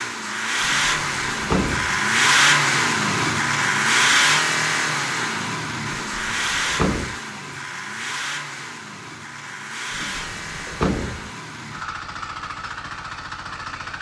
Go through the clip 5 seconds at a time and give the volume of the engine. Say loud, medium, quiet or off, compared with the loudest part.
loud, medium, quiet.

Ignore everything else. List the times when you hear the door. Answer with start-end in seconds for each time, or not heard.
0.6-2.0, 5.9-7.2, 9.9-11.3.